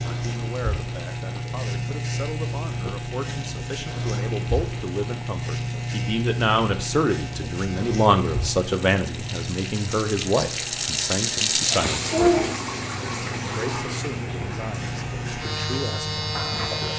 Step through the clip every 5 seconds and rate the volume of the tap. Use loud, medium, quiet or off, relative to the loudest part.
quiet, quiet, loud, medium.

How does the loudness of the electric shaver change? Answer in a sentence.
The volume of the electric shaver goes down, then up.